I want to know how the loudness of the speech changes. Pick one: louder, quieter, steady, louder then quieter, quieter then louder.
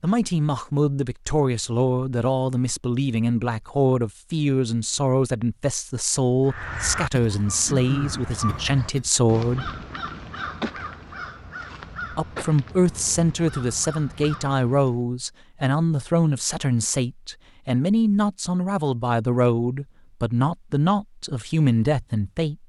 steady.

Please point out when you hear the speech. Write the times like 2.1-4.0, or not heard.
0.0-9.7, 12.2-22.6.